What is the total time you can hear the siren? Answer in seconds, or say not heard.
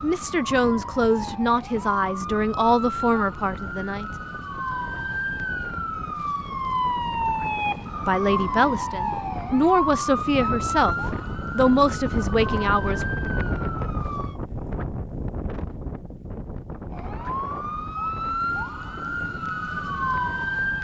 18 s.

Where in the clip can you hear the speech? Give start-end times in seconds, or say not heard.
0.0-4.0, 8.0-13.1.